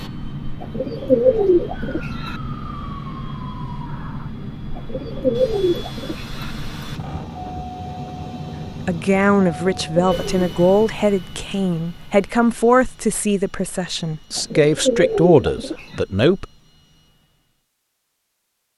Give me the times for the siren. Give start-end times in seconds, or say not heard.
1.7-4.3.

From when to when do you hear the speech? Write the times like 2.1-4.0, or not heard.
8.8-16.4.